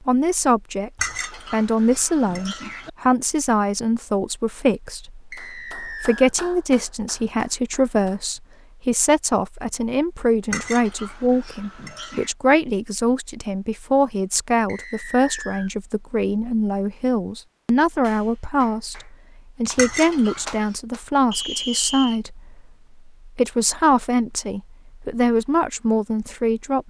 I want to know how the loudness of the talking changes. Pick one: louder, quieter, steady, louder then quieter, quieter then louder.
steady.